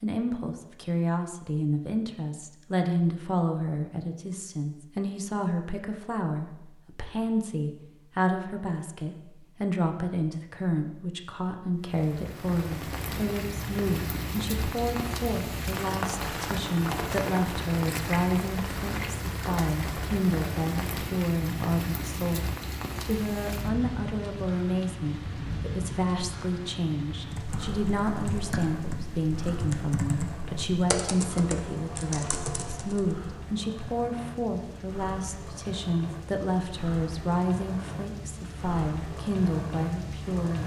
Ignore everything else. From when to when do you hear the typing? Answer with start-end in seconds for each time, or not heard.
27.3-33.1.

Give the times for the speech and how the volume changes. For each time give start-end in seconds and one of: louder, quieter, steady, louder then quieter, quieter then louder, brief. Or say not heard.
0.0-40.6 steady.